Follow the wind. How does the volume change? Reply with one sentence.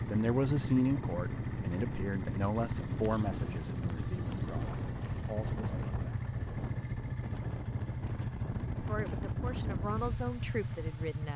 The loudness of the wind stays about the same.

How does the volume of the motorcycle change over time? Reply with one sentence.
The volume of the motorcycle stays about the same.